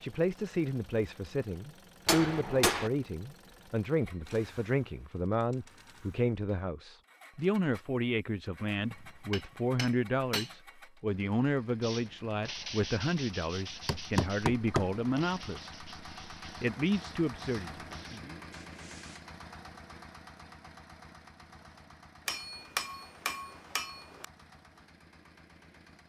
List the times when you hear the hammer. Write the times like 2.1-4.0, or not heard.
2.0-2.9, 8.8-10.5, 13.7-14.9, 22.2-24.2.